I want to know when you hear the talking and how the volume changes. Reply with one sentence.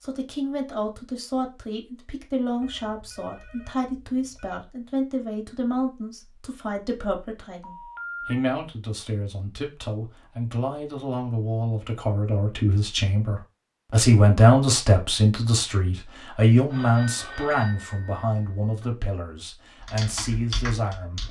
The talking can be heard from 0.0 to 21.2 s, getting louder then quieter.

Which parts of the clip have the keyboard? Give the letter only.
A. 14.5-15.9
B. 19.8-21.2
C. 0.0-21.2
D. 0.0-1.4
B.